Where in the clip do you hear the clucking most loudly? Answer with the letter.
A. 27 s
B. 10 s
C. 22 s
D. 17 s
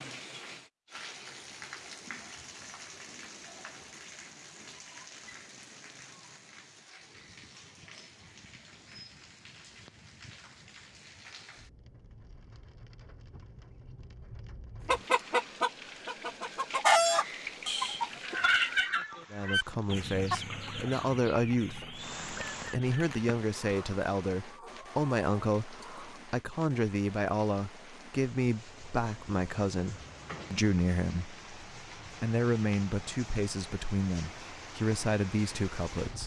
D.